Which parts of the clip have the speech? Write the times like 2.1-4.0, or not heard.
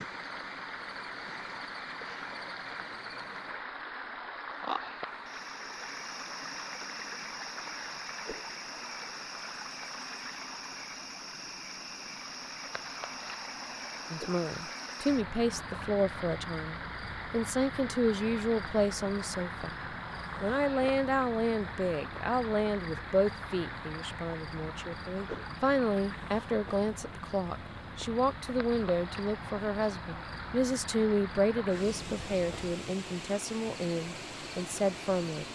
14.1-19.8, 20.4-35.5.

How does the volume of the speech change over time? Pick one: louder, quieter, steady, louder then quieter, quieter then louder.
steady.